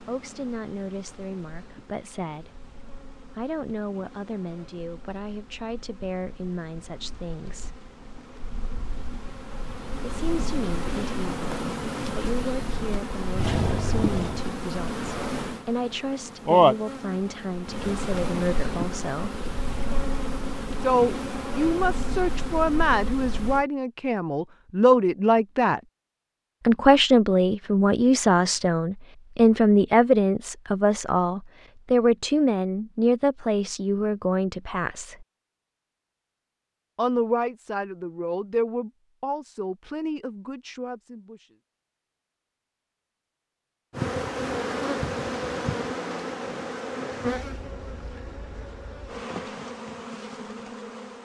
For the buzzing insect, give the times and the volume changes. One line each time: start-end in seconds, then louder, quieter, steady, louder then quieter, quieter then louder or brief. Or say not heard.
0.0-23.6 louder then quieter
43.9-51.2 quieter.